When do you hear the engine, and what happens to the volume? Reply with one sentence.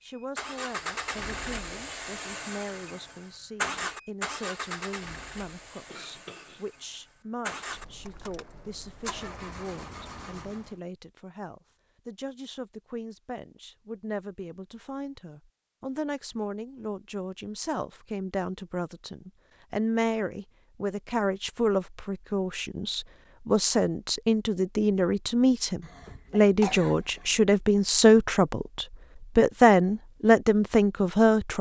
You can hear the engine from 0.1 to 10.8 s, getting quieter.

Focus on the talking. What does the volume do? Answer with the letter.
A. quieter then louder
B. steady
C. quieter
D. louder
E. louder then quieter
D.